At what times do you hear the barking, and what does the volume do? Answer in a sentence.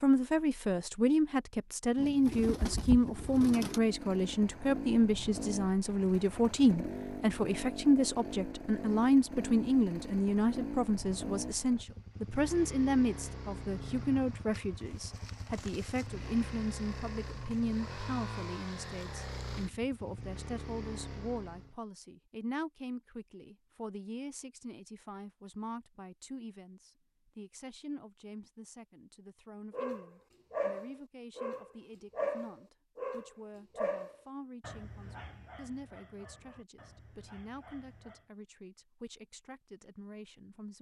You can hear the barking from 29.7 to 38.2 s, getting quieter.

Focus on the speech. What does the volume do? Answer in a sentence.
The loudness of the speech goes down.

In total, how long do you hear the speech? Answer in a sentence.
You can hear the speech for 41 seconds altogether.